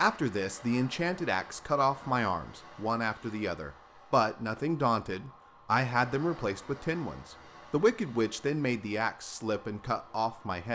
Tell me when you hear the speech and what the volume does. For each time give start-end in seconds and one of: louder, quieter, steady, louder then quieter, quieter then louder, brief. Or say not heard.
0.0-10.7 steady.